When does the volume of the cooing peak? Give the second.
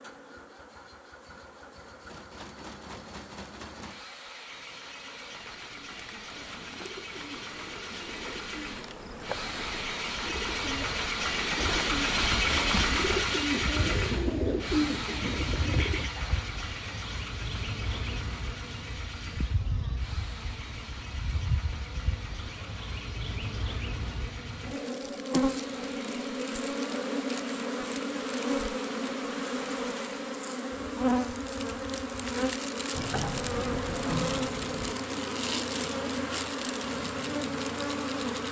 15 s.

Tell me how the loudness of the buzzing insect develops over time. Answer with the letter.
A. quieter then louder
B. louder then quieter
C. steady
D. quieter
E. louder
E.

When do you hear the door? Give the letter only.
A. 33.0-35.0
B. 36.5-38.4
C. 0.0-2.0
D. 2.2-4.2
A.